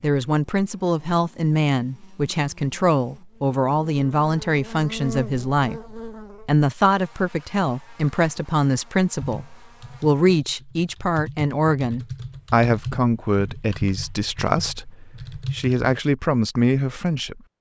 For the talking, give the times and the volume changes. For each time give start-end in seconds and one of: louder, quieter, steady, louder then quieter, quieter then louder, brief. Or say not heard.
0.0-17.4 steady.